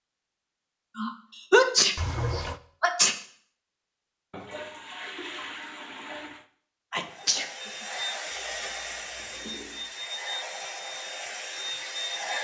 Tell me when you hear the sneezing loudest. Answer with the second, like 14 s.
2 s.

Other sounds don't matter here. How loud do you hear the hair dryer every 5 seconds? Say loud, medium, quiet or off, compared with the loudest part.
off, loud, loud.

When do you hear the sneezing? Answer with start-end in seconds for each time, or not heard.
0.9-3.1, 6.9-7.5.